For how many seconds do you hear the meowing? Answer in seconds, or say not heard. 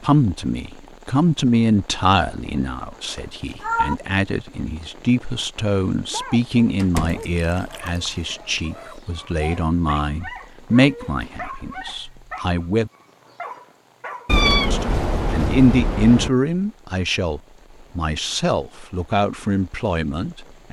4 s.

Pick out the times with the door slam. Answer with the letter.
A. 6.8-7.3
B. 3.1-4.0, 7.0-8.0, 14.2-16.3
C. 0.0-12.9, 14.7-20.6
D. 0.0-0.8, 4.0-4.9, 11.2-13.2
A.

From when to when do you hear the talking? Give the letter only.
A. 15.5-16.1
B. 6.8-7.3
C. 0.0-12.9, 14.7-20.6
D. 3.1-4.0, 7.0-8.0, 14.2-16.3
C.